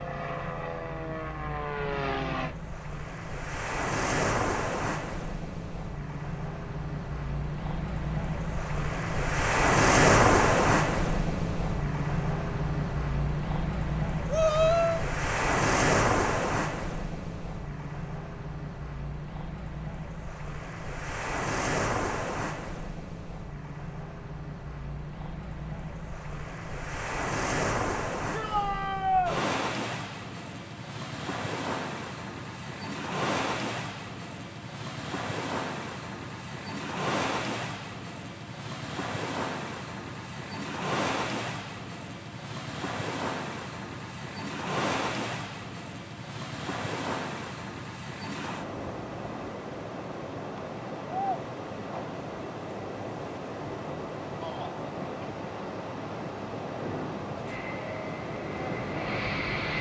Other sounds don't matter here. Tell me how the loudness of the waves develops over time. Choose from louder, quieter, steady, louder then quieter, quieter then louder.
quieter.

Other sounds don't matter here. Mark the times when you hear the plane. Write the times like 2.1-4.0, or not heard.
0.0-2.5, 57.4-59.7.